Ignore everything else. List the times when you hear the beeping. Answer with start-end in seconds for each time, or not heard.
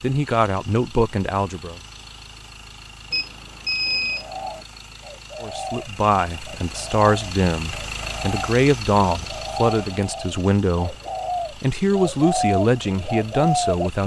3.1-4.6.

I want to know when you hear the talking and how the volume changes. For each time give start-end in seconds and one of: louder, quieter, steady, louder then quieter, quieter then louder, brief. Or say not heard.
0.0-1.8 brief
5.4-14.0 steady.